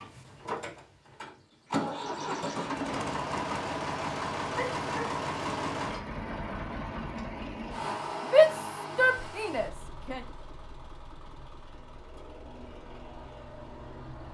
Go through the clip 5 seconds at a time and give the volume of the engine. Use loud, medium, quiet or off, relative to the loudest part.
loud, loud, quiet.